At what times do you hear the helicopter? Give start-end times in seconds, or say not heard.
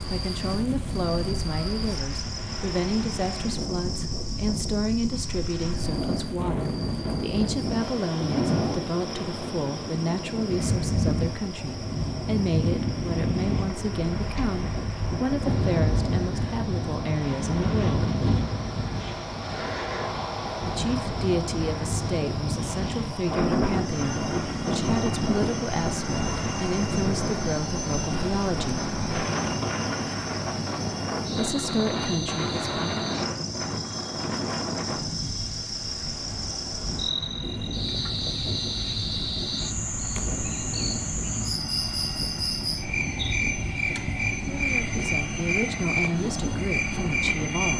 23.6-47.7.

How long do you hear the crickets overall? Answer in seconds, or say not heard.
48 s.